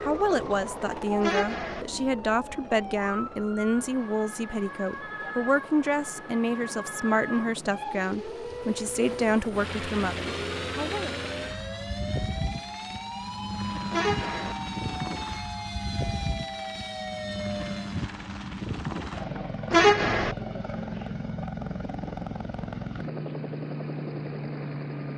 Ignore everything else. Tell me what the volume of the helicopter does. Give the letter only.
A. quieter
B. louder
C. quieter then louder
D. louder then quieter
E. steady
B.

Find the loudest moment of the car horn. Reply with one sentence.
The loudest moment of the car horn is at 20 seconds.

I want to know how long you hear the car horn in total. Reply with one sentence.
The car horn can be heard for 2 seconds in total.